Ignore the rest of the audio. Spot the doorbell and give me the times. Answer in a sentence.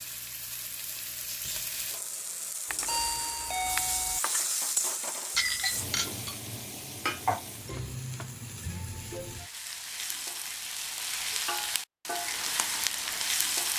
You can hear the doorbell from 2.7 to 4.2 s.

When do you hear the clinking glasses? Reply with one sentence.
You can hear the clinking glasses from 5.3 to 6.4 s.